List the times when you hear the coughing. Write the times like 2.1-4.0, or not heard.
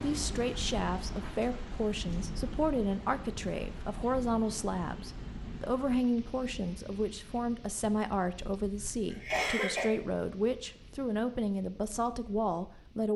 8.8-9.9.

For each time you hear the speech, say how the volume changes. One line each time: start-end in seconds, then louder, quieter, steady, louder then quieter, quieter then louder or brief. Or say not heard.
0.0-13.1 steady.